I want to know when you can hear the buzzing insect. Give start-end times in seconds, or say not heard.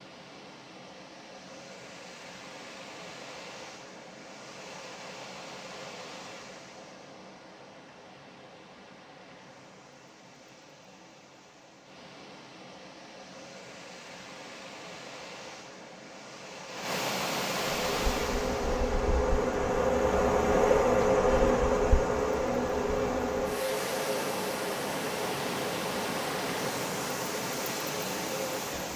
17.7-28.9.